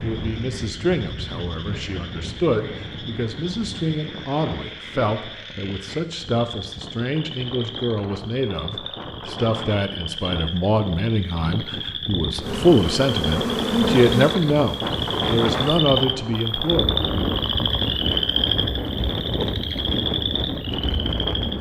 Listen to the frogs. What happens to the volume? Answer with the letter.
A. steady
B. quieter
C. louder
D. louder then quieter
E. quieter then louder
C.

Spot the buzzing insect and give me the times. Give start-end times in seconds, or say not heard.
12.4-15.8.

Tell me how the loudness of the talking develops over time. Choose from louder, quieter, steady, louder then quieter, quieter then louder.
louder.